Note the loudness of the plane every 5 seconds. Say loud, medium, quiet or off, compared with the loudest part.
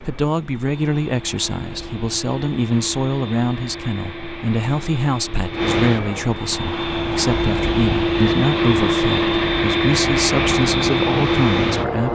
quiet, loud, loud.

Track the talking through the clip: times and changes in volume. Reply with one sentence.
The talking can be heard from 0.0 to 12.1 s, at a steady volume.